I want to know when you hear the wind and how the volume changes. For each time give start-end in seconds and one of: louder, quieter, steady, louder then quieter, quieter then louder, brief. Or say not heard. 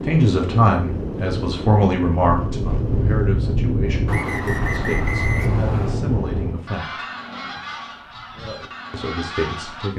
0.0-6.7 steady.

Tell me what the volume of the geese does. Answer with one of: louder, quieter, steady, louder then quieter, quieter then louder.
quieter.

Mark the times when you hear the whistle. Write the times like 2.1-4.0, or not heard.
4.0-6.0.